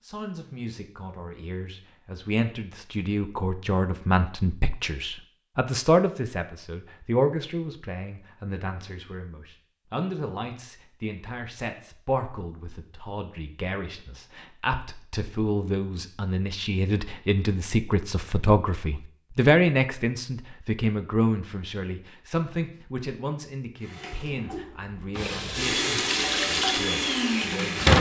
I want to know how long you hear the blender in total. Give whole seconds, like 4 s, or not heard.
4 s.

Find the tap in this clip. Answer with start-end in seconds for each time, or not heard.
25.1-27.9.